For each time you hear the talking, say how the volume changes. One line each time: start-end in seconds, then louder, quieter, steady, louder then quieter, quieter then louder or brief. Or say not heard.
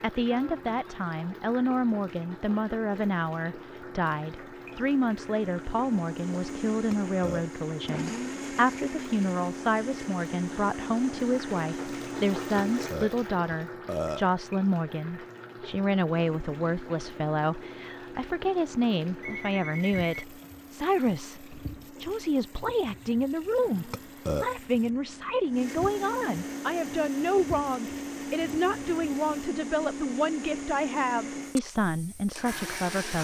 0.0-33.1 steady.